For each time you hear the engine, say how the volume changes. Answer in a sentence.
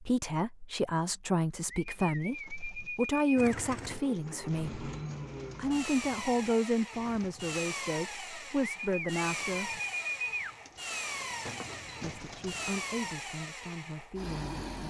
The engine can be heard from 3.4 to 14.8 s, at a steady volume.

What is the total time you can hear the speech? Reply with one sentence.
The speech can be heard for 12 seconds in total.